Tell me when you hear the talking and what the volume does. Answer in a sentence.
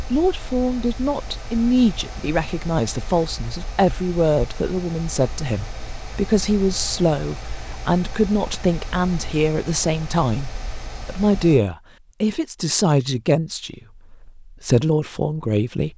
The talking can be heard from 0.1 to 15.9 s, at a steady volume.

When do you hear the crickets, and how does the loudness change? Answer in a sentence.
You can't hear the crickets here.